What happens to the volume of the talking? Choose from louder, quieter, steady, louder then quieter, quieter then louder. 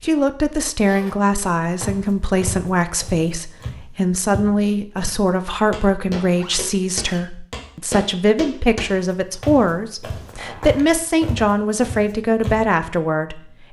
steady.